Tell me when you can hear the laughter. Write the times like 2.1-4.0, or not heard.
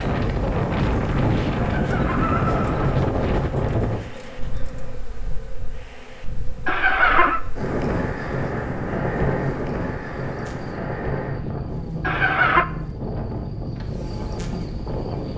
1.6-3.0, 6.7-7.4, 12.0-12.7.